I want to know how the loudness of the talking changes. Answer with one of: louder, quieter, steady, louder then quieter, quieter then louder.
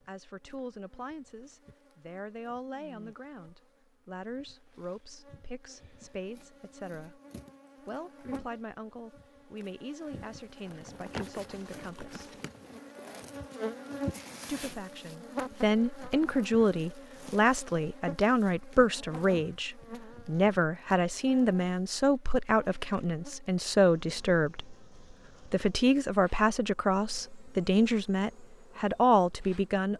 louder.